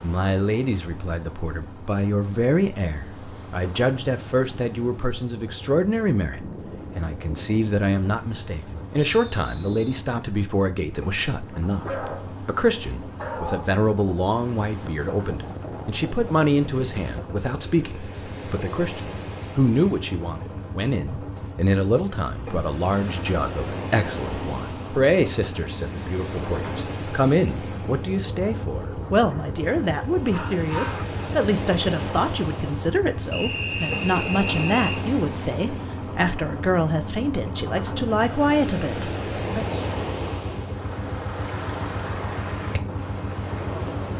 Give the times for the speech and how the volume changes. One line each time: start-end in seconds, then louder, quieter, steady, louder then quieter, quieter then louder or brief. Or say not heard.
0.0-39.8 steady.